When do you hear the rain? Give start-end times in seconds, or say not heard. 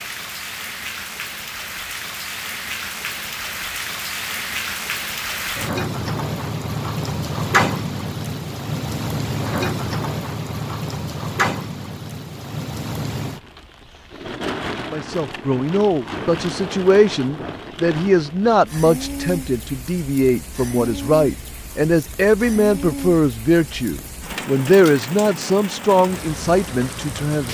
0.0-27.4.